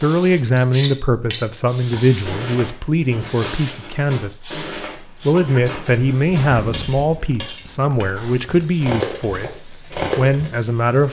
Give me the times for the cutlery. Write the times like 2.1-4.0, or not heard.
0.6-10.5.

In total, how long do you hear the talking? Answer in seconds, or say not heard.
11 s.